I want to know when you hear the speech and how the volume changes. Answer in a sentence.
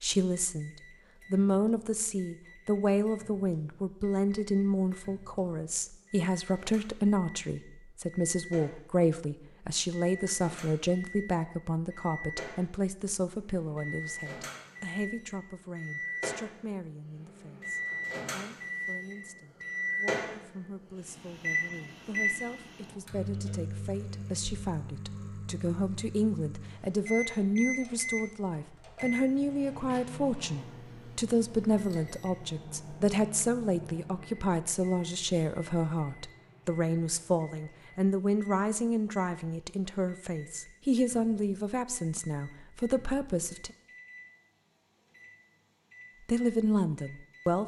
The speech can be heard briefly from 0.0 to 0.7 s; from 1.3 to 43.7 s, getting quieter then louder; and briefly from 46.2 to 47.6 s.